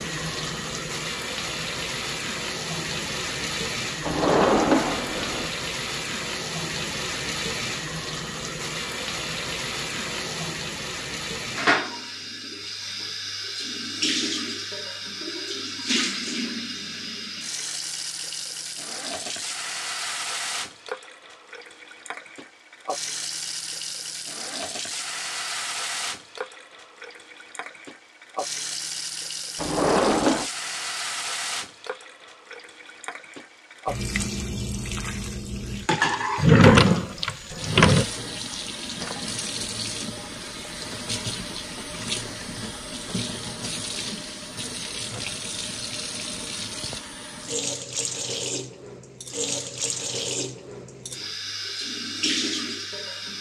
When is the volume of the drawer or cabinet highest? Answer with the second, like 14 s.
37 s.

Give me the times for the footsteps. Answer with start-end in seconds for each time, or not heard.
not heard.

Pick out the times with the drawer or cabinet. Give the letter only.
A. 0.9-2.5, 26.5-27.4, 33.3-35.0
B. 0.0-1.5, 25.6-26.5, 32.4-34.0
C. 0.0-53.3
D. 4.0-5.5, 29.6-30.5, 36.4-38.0
D.